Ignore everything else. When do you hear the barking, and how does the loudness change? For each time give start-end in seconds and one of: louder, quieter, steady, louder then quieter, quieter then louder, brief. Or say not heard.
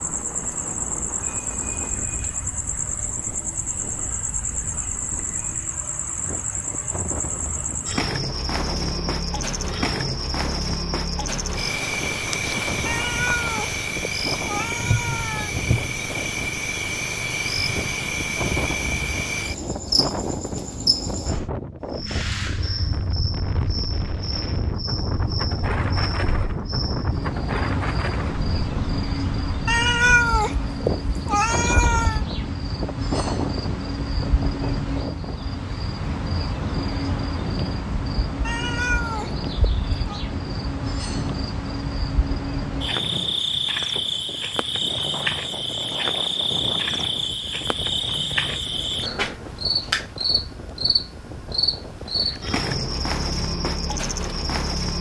not heard.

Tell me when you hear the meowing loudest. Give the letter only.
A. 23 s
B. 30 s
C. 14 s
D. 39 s
B.